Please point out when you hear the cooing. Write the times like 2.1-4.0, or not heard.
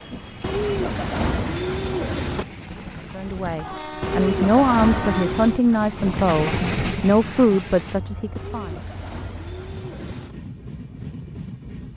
0.4-2.5, 4.0-5.7, 8.3-10.3.